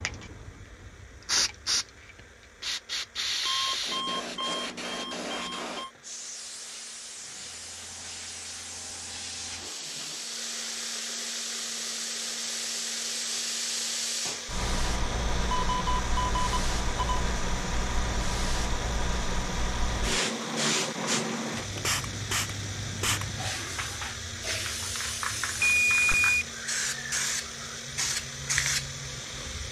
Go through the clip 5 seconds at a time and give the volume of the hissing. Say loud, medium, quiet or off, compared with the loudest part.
loud, medium, loud, loud, loud, loud.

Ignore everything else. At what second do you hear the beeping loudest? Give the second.
26 s.